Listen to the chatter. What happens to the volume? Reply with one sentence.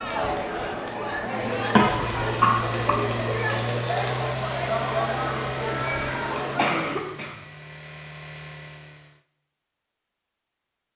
The volume of the chatter stays about the same.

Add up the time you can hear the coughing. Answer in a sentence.
You can hear the coughing for 2 seconds altogether.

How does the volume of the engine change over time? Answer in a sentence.
The loudness of the engine goes down.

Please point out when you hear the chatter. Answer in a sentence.
The chatter can be heard from 0.0 to 7.1 s.